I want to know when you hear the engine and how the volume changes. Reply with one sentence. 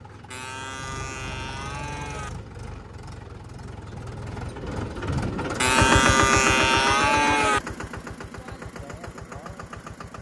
You can hear the engine from 0.0 to 10.1 s, getting louder then quieter.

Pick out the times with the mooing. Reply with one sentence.
The mooing can be heard from 0.3 to 2.3 s and from 5.6 to 7.6 s.